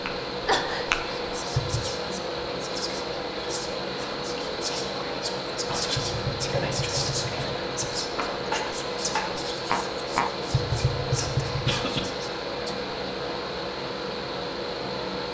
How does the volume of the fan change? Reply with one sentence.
The volume of the fan stays about the same.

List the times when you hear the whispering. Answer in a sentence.
You can hear the whispering from 0.9 to 12.8 s.